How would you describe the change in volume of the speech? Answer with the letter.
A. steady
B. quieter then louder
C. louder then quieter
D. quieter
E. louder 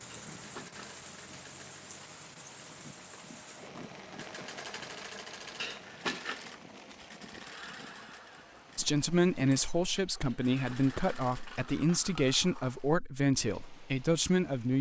A.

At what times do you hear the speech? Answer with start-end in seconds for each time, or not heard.
8.8-14.7.